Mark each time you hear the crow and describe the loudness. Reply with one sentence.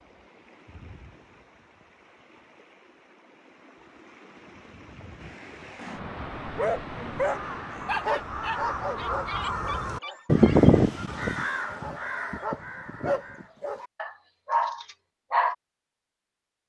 You can hear the crow from 5.5 to 13.7 s, getting louder then quieter.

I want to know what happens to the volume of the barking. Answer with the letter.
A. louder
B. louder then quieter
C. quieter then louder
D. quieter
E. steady
C.